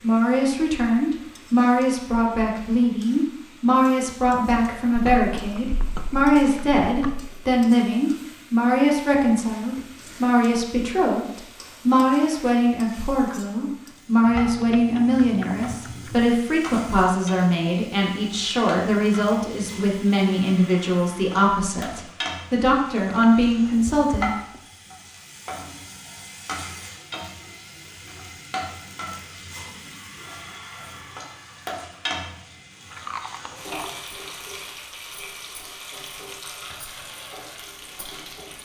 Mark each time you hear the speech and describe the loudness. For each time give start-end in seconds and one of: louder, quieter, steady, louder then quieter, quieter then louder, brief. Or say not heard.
0.0-24.3 steady.